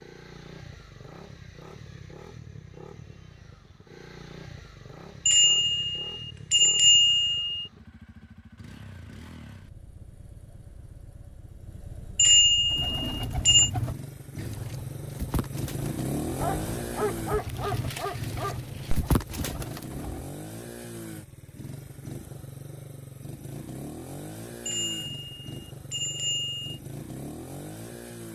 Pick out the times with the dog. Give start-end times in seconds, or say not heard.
16.4-19.1.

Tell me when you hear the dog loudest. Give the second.
17 s.